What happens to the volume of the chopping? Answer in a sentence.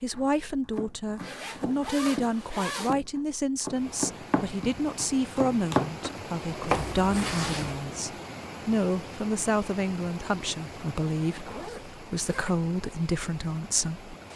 The loudness of the chopping goes up.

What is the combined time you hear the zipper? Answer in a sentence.
You can hear the zipper for 4 seconds altogether.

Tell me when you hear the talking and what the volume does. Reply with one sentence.
The talking can be heard from 0.0 to 14.1 s, at a steady volume.